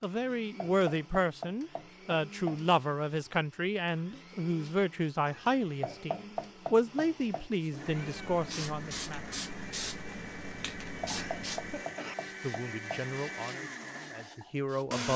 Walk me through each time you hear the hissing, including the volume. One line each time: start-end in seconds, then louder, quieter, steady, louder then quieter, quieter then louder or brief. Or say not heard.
7.6-15.0 quieter.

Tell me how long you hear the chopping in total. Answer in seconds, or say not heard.
6 s.